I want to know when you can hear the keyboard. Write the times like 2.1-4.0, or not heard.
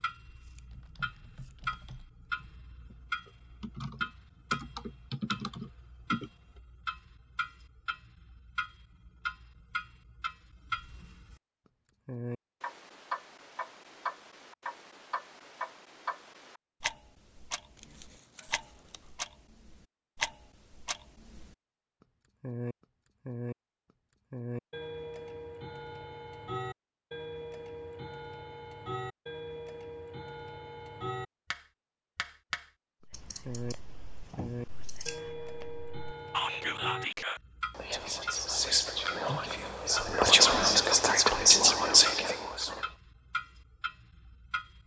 0.5-6.3.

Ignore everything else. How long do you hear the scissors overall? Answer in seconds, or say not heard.
5 s.